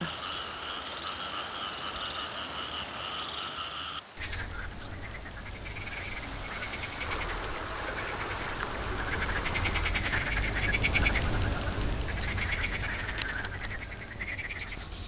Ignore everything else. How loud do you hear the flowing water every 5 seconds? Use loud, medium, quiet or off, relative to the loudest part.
loud, loud, off.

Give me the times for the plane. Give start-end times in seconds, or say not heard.
not heard.